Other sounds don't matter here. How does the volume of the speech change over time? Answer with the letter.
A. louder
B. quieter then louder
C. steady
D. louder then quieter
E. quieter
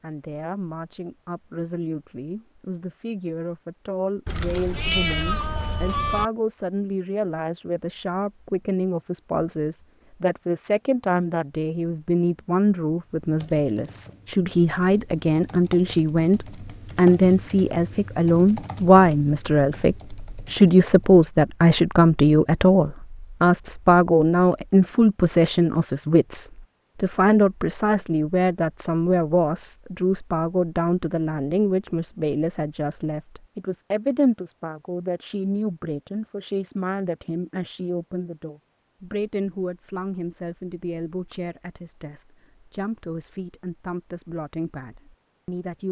D.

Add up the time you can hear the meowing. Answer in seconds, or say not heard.
2 s.